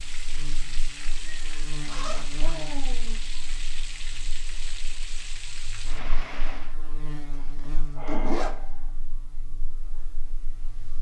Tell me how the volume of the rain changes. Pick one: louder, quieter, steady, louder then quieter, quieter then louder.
steady.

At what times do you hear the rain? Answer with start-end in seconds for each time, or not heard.
0.0-6.8.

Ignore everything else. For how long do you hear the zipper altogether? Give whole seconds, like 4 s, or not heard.
2 s.